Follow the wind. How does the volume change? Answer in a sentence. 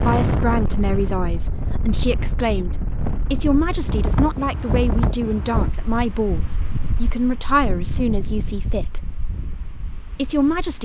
The volume of the wind goes down.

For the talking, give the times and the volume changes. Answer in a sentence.
The talking can be heard from 0.0 to 9.2 s, at a steady volume; and briefly from 10.2 to 10.7 s.